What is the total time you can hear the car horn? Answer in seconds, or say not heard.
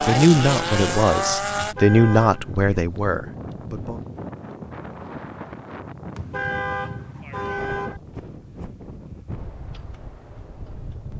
3 s.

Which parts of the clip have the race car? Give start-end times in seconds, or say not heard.
0.0-1.8.